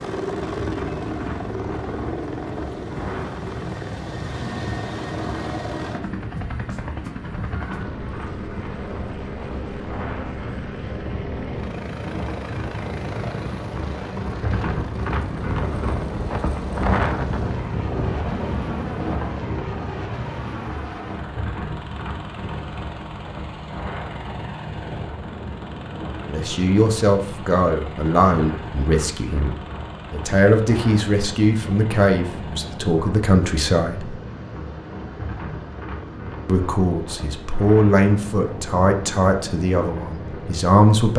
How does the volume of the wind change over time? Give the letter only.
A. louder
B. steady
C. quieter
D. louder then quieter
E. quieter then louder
D.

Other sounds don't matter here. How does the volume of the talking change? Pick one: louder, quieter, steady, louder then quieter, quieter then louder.
steady.